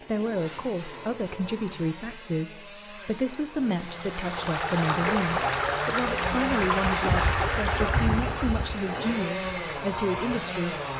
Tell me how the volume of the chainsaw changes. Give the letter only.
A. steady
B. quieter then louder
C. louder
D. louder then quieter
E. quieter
C.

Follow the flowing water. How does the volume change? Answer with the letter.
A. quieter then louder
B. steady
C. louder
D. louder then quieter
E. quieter
E.